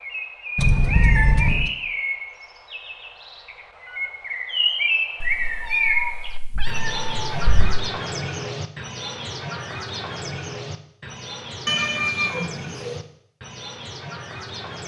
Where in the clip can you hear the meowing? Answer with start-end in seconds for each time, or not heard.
0.6-1.7, 5.2-7.8, 11.7-13.0.